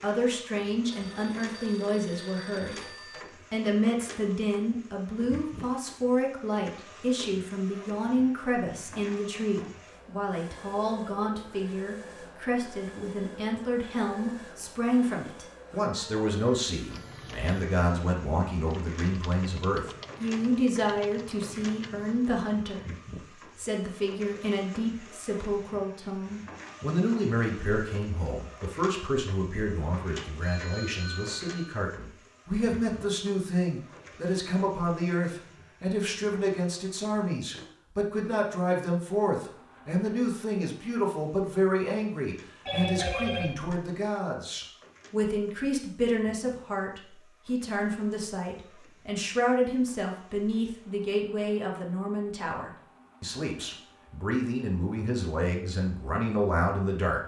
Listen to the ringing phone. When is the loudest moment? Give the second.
43 s.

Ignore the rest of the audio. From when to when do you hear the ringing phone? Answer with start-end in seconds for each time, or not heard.
0.9-3.2, 30.4-31.8, 42.6-43.5.